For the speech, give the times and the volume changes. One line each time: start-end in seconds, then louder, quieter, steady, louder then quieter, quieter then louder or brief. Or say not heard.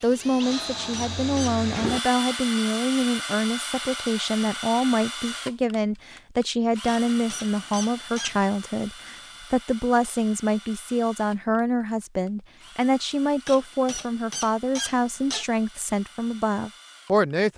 0.0-17.5 steady.